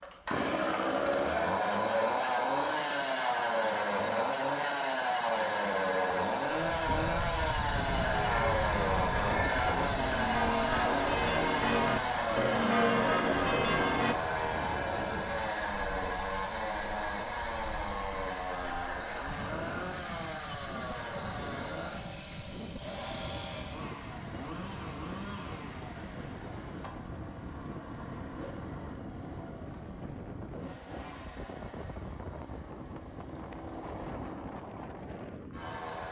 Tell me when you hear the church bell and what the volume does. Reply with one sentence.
The church bell can be heard from 7.8 to 14.2 s, getting louder.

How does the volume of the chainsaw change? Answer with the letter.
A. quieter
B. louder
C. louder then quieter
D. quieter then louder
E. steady
A.